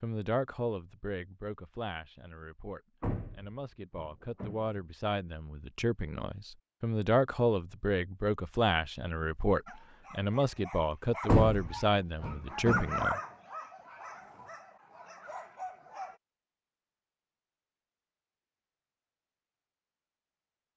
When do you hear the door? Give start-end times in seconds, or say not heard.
3.0-4.8, 11.2-13.0.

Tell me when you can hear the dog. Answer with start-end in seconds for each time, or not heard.
9.7-16.2.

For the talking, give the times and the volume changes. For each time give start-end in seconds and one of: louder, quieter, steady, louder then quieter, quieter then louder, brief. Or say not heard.
0.0-13.2 louder.